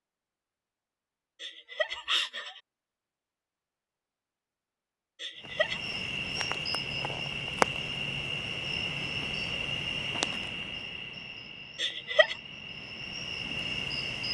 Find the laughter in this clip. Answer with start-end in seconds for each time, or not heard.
1.4-2.6, 5.2-5.8, 11.8-12.3.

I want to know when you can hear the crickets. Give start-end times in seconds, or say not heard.
5.3-14.3.